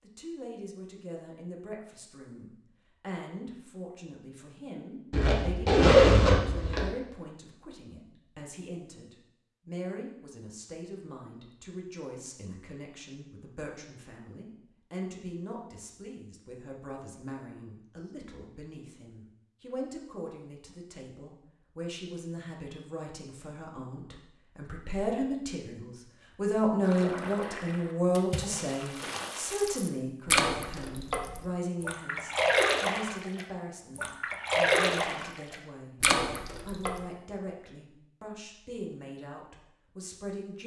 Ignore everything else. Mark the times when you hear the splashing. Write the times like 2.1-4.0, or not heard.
26.8-37.0.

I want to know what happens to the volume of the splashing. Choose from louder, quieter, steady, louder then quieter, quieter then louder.
louder.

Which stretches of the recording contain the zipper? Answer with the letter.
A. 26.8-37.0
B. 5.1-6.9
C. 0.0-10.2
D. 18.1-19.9
B.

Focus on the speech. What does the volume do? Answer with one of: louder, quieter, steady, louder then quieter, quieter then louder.
louder then quieter.